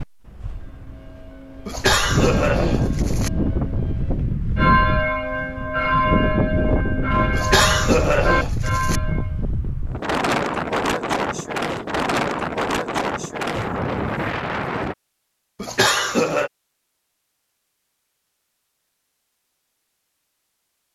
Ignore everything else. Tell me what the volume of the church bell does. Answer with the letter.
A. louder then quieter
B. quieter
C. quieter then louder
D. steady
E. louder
E.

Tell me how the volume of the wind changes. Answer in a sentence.
The volume of the wind stays about the same.